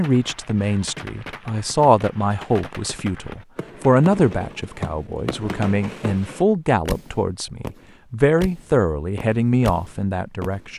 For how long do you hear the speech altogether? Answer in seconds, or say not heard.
11 s.